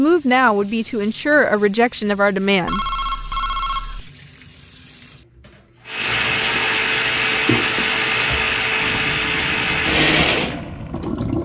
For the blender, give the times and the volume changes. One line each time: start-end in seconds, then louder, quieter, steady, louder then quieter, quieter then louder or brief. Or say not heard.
5.8-11.4 steady.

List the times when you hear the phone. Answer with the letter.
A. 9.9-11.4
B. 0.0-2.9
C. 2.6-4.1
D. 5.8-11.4
C.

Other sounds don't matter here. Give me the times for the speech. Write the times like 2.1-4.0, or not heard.
0.0-2.9.